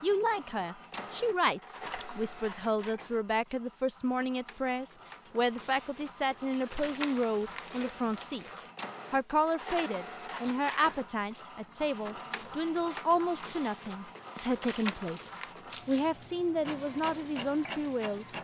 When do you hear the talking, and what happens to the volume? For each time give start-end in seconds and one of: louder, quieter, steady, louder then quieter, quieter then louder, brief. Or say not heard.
0.0-18.2 steady.